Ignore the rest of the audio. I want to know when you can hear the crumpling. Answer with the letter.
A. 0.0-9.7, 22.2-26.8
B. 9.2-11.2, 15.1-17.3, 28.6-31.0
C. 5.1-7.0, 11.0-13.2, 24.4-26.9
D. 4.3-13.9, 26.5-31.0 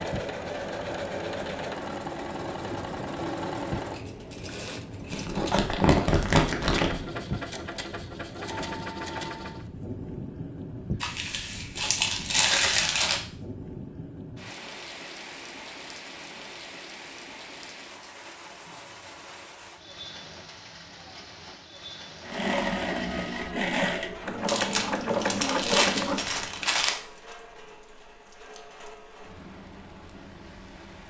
C.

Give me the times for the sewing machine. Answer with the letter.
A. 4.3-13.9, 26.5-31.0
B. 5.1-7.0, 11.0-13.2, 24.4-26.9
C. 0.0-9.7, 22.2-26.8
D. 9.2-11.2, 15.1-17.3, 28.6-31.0
C.